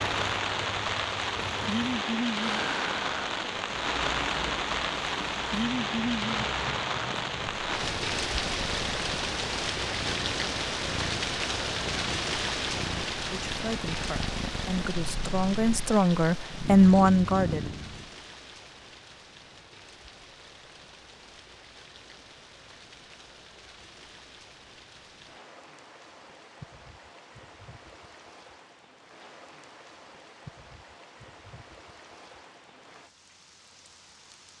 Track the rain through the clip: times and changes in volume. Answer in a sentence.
The rain can be heard from 0.0 to 34.5 s, getting quieter.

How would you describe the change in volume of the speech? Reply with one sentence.
The volume of the speech goes up.